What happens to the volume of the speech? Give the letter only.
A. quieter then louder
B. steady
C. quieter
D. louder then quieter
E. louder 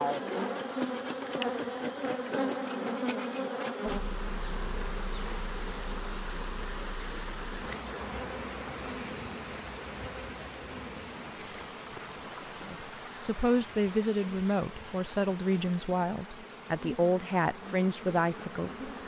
B.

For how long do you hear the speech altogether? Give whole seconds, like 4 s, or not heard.
6 s.